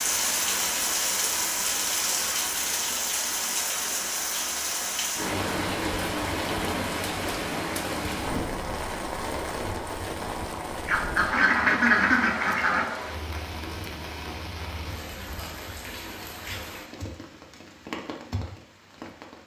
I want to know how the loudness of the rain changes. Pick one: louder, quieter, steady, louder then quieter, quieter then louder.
quieter.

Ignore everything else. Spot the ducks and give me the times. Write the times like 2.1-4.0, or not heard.
10.8-12.8.